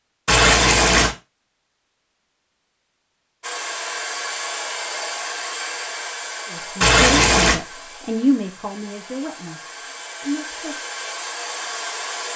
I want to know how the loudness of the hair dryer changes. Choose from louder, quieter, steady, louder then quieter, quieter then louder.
quieter then louder.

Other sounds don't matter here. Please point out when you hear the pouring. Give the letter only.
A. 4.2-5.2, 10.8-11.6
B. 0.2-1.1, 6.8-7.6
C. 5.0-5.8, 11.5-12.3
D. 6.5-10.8
B.